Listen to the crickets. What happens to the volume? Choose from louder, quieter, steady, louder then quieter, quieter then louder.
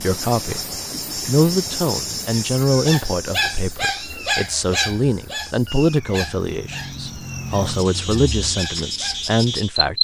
quieter then louder.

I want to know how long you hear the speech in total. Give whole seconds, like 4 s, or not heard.
10 s.